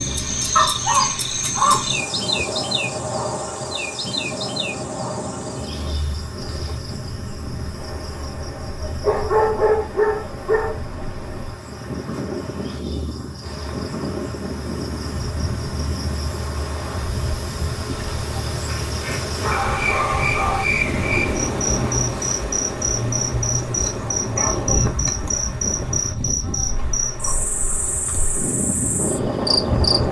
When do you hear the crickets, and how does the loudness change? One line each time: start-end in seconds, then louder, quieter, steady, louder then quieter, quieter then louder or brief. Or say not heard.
0.0-30.0 quieter then louder.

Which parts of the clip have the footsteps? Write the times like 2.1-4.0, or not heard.
not heard.